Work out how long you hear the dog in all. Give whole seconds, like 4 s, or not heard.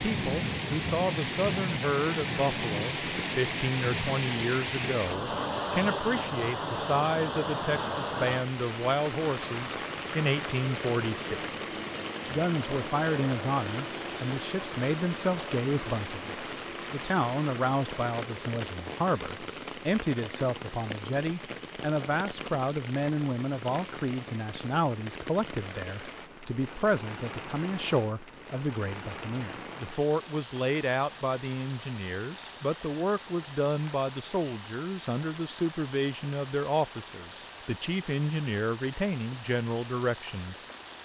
not heard.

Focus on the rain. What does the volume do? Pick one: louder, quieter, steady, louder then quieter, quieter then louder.
quieter.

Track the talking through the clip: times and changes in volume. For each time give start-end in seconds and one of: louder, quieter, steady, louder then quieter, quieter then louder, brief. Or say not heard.
0.1-41.0 steady.